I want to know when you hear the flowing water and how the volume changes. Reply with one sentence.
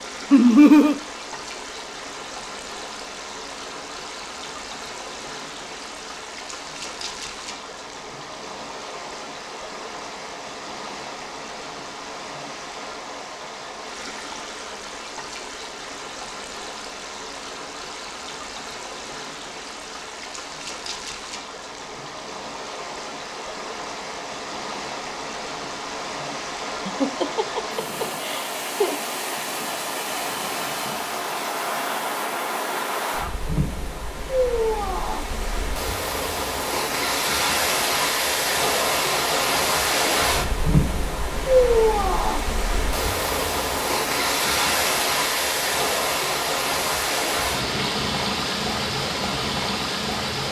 You can hear the flowing water from 0.0 to 50.4 s, getting louder.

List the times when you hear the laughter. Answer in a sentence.
You can hear the laughter from 0.3 to 0.9 s and from 26.9 to 29.1 s.